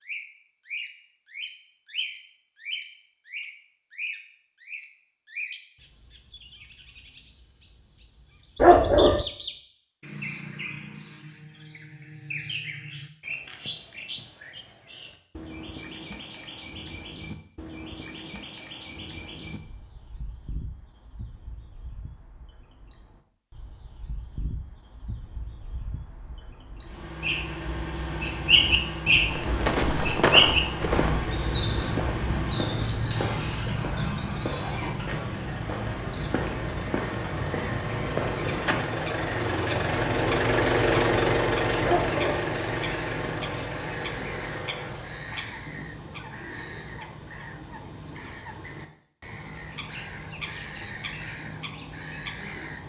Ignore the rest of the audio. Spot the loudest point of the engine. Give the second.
41 s.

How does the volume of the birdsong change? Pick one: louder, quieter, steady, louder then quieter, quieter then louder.
louder then quieter.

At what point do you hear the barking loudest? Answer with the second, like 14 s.
9 s.